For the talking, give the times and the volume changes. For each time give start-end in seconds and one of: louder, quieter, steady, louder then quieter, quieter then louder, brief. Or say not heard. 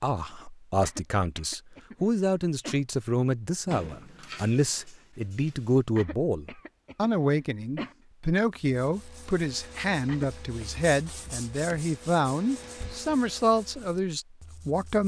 0.0-15.0 steady.